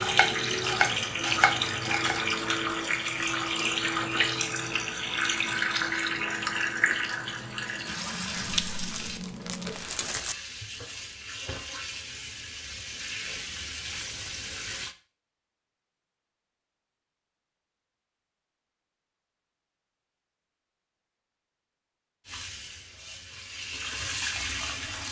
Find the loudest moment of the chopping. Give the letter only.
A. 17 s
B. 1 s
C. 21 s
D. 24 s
B.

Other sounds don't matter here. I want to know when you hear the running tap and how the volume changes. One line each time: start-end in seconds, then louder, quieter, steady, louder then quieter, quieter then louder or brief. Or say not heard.
0.0-14.9 quieter
22.2-25.0 brief.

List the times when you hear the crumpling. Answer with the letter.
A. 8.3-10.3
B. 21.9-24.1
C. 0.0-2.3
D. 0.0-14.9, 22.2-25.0
A.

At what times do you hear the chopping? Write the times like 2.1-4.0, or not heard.
0.0-2.3.